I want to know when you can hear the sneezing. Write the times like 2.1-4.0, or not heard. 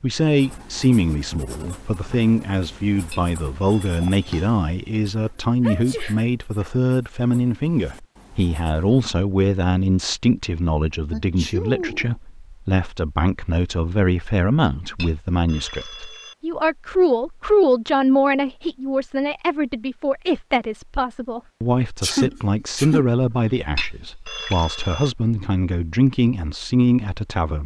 5.6-6.7, 11.1-12.2, 22.0-23.1.